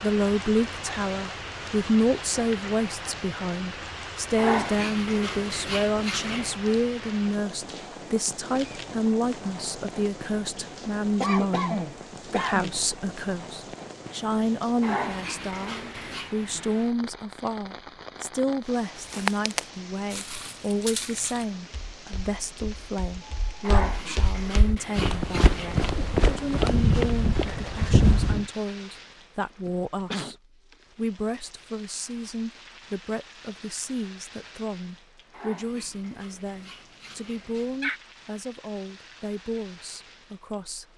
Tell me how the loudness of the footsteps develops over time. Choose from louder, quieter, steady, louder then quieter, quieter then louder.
quieter then louder.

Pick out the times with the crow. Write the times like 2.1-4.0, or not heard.
not heard.